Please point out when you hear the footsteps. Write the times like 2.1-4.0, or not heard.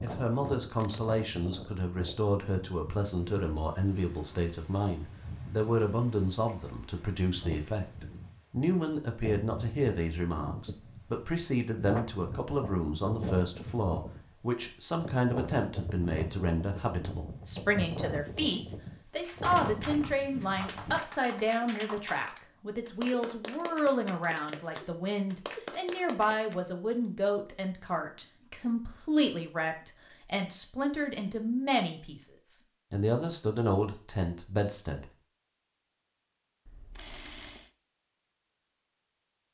not heard.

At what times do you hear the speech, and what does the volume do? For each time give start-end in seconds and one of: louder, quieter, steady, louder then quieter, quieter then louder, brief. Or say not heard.
0.0-35.1 steady.